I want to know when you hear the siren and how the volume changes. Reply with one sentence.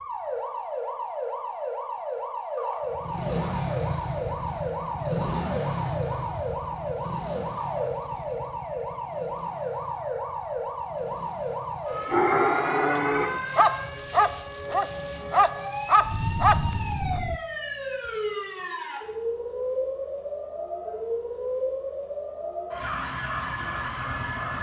The siren can be heard from 0.0 to 24.5 s, at a steady volume.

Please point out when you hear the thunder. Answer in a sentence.
The thunder can be heard from 16.0 to 17.4 s.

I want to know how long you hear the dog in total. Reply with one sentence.
The dog can be heard for 5 seconds in total.